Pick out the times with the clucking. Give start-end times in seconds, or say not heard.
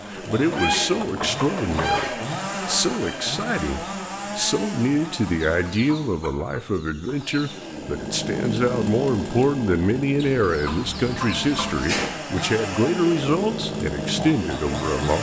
0.5-3.1, 5.3-7.8, 10.2-12.2.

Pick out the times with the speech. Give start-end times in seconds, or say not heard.
0.1-15.1.